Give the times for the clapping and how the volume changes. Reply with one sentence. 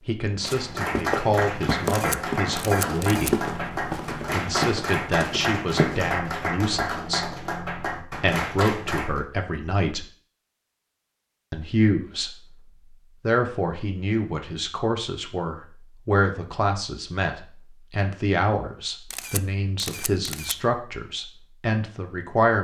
You can hear the clapping from 0.5 to 9.2 s, at a steady volume.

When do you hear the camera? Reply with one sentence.
You can hear the camera from 1.9 to 3.3 s and from 19.1 to 20.6 s.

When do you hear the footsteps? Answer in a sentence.
The footsteps can be heard from 0.4 to 6.2 s.